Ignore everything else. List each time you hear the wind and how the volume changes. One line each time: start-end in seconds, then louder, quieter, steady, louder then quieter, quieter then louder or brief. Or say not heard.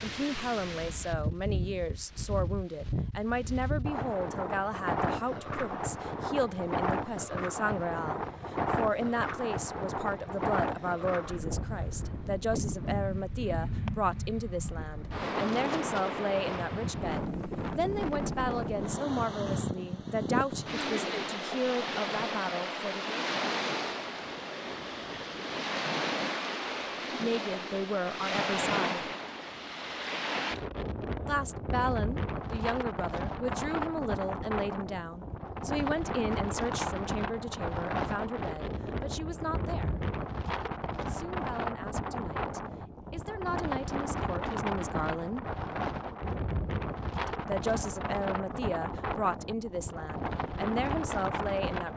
0.0-51.9 steady.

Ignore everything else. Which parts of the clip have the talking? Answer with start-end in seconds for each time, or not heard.
0.0-23.2, 27.1-29.1, 31.2-40.0, 41.0-45.5, 47.2-51.9.